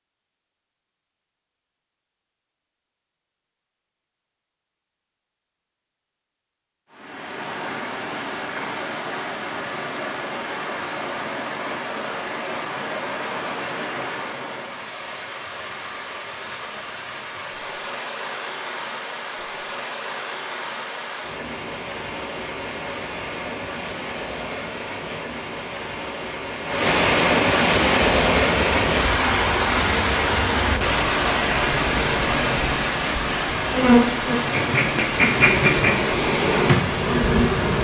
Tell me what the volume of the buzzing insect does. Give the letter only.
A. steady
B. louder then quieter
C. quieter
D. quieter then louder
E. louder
E.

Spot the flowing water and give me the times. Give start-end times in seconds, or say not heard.
6.9-37.7.